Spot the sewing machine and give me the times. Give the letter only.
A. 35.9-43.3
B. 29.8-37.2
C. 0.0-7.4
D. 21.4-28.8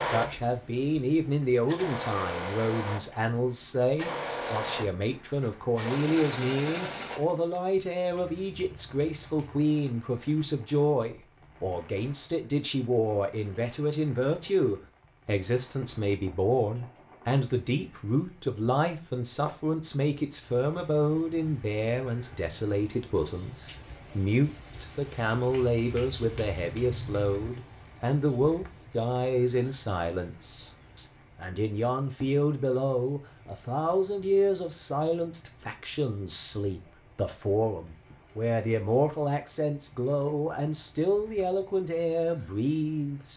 C.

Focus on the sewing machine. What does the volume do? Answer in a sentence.
The loudness of the sewing machine goes up.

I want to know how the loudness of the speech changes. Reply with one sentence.
The loudness of the speech stays about the same.